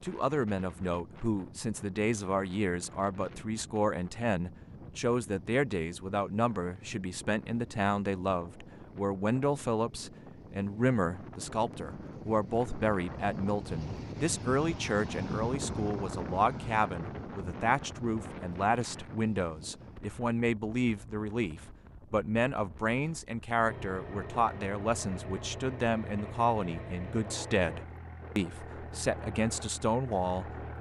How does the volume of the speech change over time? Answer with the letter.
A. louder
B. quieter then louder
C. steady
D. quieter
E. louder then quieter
C.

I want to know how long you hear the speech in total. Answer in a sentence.
You can hear the speech for 31 seconds altogether.